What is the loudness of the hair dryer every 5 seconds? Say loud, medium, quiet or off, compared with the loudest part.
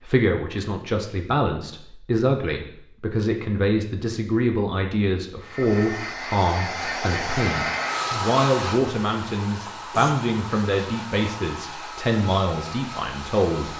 off, loud, medium.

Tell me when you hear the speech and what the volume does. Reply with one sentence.
You can hear the speech from 0.0 to 13.7 s, at a steady volume.